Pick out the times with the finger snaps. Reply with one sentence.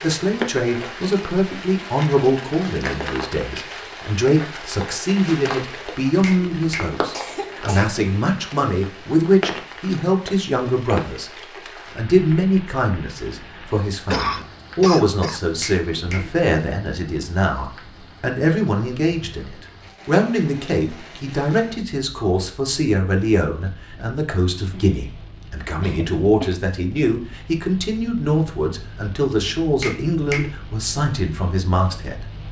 You can hear the finger snaps from 6.2 to 7.0 s, from 15.6 to 16.3 s and from 29.8 to 30.5 s.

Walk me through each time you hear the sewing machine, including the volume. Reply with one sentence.
The sewing machine can't be heard in this clip.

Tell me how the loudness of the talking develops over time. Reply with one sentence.
The loudness of the talking stays about the same.